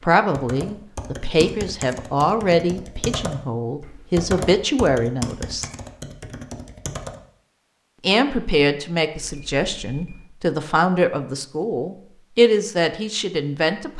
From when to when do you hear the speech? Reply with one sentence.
You can hear the speech from 0.0 to 5.7 s and from 8.0 to 13.9 s.